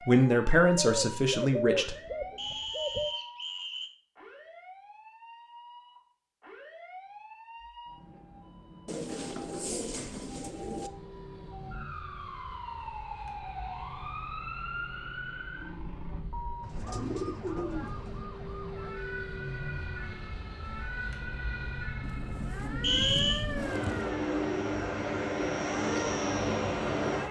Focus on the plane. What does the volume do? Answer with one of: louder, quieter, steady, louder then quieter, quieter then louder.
louder.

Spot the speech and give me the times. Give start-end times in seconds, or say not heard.
0.1-1.9.